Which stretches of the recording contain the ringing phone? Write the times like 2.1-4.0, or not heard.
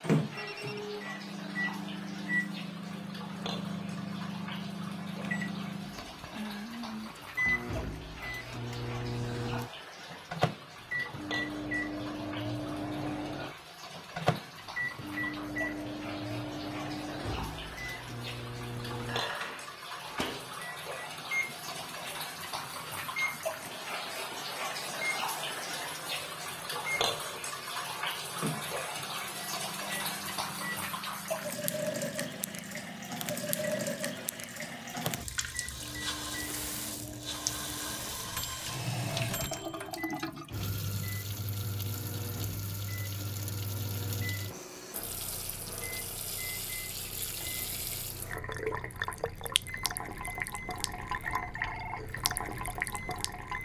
0.3-1.1, 51.4-52.1.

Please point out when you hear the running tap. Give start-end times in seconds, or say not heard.
0.0-53.6.